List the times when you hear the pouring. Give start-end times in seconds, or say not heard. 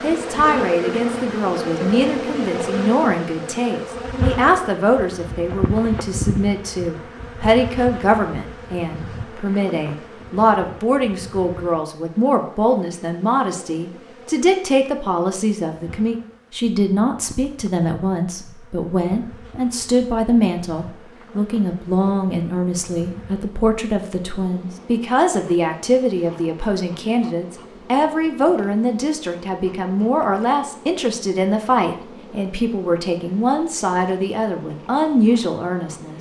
not heard.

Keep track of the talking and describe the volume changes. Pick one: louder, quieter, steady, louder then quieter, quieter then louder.
steady.